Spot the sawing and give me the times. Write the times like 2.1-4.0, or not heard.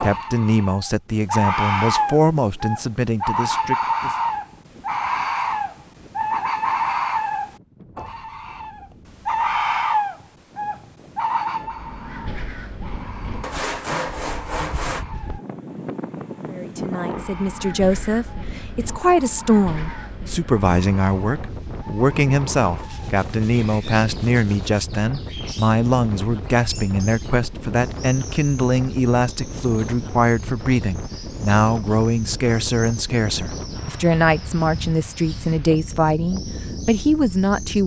13.4-15.1, 22.8-24.9.